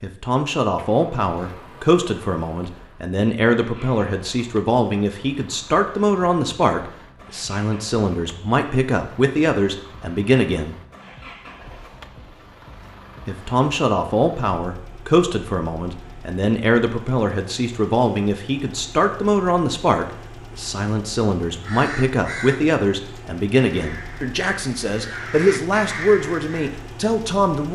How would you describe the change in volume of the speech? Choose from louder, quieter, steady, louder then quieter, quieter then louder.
steady.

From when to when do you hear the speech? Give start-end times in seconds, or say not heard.
0.0-10.8, 13.2-27.7.